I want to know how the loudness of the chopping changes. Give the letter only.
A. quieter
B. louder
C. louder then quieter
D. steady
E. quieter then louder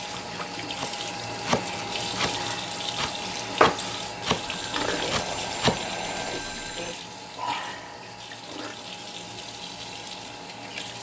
E.